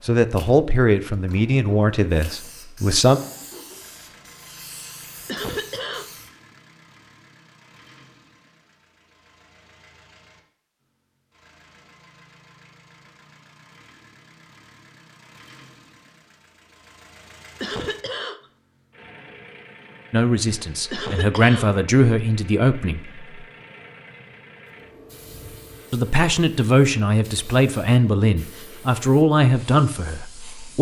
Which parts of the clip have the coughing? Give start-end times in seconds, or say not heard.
5.2-6.2, 17.6-18.4, 20.9-21.8.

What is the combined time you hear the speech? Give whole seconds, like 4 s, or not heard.
11 s.